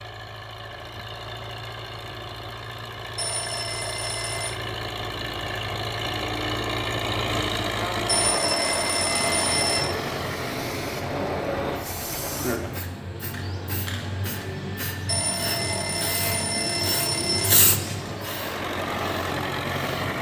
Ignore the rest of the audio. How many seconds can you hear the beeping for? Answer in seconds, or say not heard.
6 s.